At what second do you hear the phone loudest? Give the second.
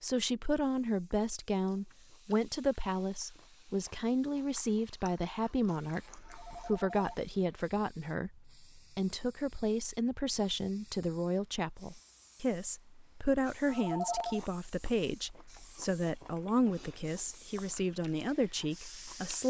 14 s.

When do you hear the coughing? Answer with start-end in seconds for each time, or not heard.
not heard.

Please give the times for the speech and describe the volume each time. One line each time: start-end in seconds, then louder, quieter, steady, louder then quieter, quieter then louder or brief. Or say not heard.
0.0-19.4 steady.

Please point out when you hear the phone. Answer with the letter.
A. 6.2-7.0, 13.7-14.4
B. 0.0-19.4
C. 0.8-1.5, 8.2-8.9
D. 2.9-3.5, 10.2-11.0
A.